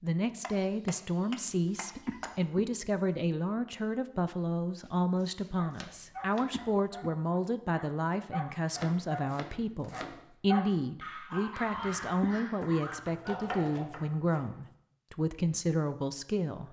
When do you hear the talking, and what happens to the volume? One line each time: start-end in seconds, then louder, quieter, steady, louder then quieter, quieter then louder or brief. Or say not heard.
0.0-16.6 steady.